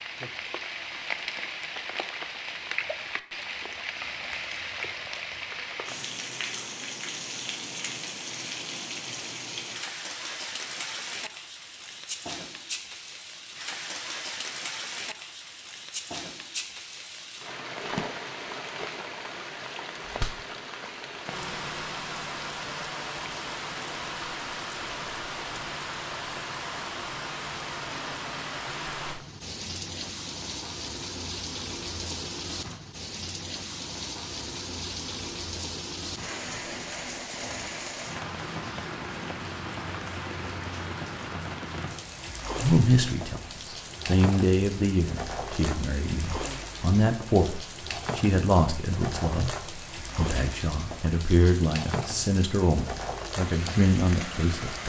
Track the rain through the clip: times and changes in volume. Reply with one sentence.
You can hear the rain from 0.0 to 54.8 s, at a steady volume.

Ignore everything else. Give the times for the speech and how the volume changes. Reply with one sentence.
The speech can be heard from 42.5 to 54.8 s, at a steady volume.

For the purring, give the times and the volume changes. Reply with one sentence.
You can't hear the purring here.